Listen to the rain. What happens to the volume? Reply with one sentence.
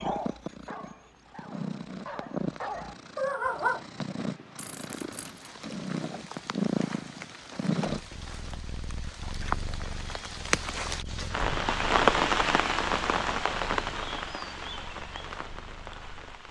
The volume of the rain goes up, then down.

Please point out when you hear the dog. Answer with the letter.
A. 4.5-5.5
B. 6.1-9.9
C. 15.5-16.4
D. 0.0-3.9
D.